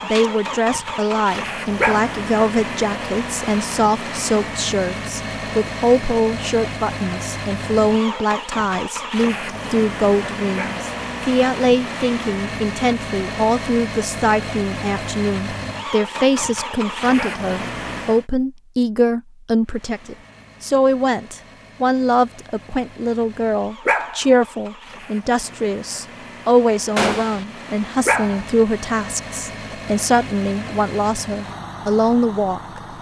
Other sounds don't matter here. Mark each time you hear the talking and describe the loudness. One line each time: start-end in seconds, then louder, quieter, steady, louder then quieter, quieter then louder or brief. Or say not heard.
0.0-32.8 steady.